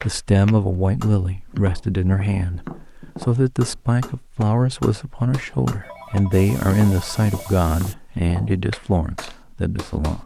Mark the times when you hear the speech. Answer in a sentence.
The speech can be heard from 0.0 to 10.2 s.